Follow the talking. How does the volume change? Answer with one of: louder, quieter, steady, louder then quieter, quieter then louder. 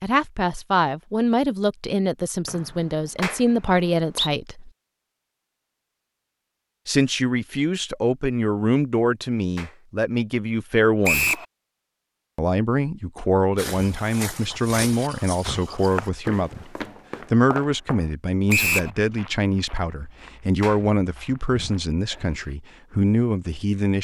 steady.